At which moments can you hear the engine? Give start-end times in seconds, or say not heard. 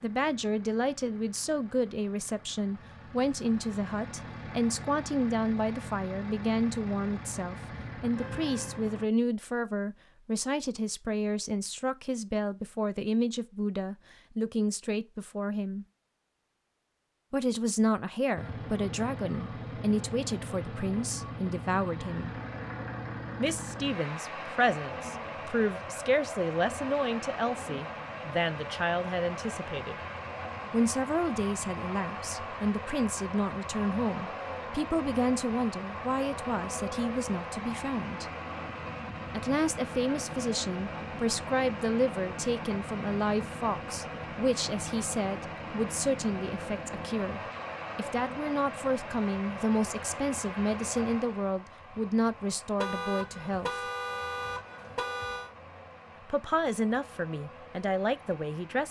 0.0-9.1, 18.4-58.8.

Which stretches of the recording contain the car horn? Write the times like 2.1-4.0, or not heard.
8.2-8.8, 52.8-55.5.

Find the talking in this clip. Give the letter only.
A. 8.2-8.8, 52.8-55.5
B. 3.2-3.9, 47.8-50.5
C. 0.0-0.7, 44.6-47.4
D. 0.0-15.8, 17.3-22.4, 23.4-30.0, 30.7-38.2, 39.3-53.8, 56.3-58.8
D.